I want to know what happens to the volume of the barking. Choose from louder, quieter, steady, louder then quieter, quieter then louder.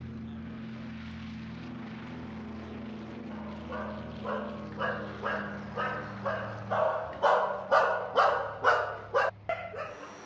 louder.